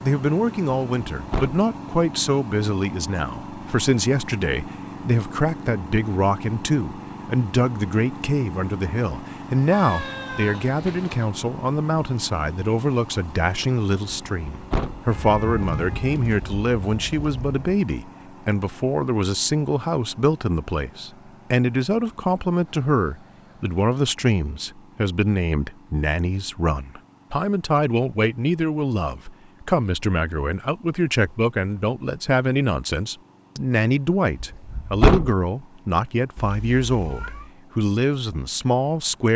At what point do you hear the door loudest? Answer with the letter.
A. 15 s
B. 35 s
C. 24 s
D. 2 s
B.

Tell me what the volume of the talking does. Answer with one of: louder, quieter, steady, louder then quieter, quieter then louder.
steady.